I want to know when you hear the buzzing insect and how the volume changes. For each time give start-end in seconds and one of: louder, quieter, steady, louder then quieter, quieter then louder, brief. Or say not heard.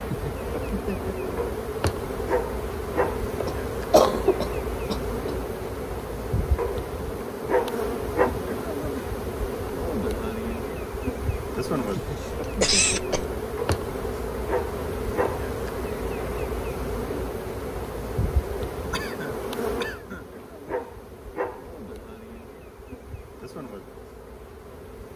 0.0-25.1 quieter.